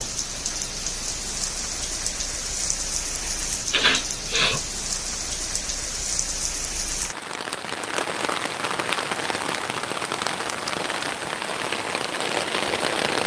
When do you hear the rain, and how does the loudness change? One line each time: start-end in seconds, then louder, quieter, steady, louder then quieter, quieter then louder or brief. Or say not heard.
0.0-13.2 steady.